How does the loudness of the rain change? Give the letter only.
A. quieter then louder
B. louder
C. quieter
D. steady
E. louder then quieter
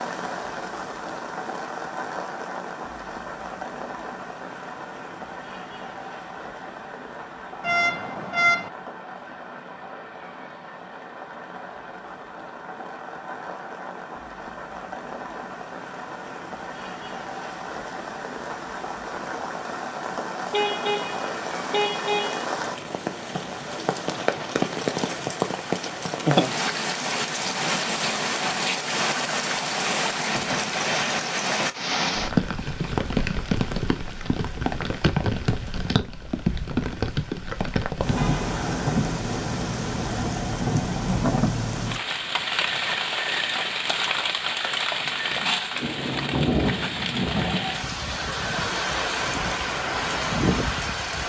B.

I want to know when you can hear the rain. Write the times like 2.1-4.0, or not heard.
0.0-51.2.